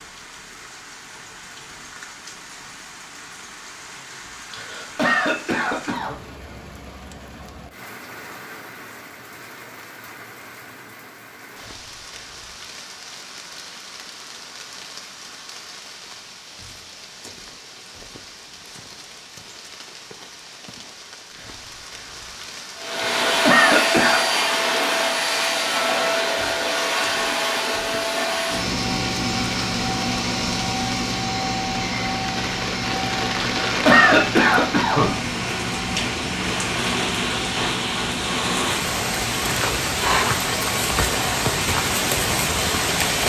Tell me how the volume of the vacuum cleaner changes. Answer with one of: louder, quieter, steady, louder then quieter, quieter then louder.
quieter.